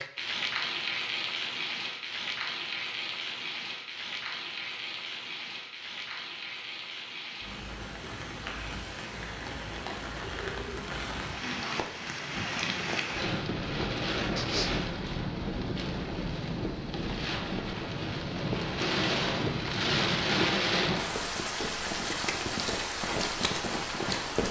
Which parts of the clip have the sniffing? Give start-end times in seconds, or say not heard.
13.8-14.7.